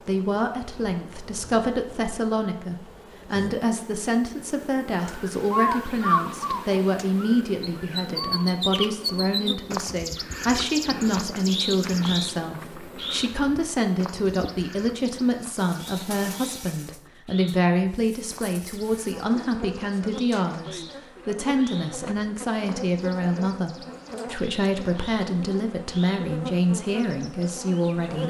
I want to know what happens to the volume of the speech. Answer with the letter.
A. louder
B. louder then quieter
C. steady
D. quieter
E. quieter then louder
C.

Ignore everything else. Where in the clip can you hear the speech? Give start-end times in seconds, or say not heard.
0.1-28.2.